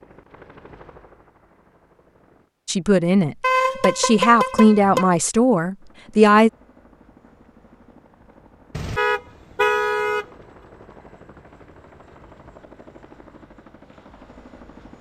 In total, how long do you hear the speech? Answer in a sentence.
You can hear the speech for 4 seconds altogether.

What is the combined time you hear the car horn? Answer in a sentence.
You can hear the car horn for 3 seconds altogether.